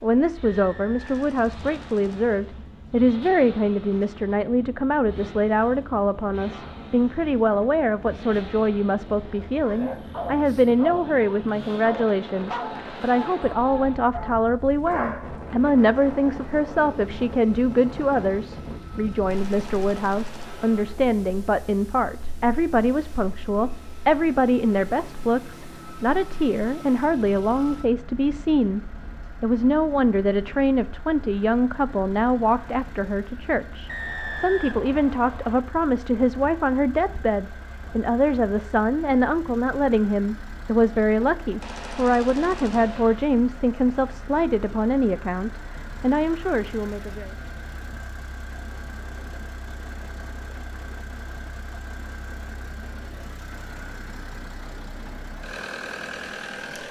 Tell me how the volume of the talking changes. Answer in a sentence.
The loudness of the talking stays about the same.